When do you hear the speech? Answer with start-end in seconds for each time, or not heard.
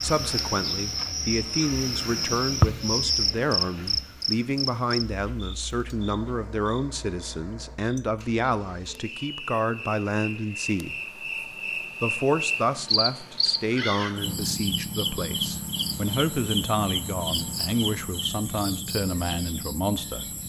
0.0-11.0, 12.0-20.3.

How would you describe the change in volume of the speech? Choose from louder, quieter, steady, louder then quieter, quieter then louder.
steady.